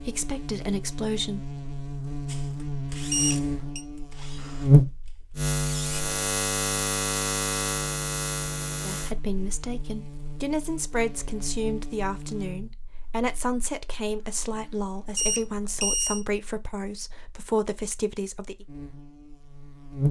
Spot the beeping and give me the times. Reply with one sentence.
You can hear the beeping from 3.1 to 3.9 s and from 15.2 to 16.2 s.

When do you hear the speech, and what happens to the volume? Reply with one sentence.
You can hear the speech briefly from 0.0 to 1.6 s; and from 8.8 to 18.6 s, at a steady volume.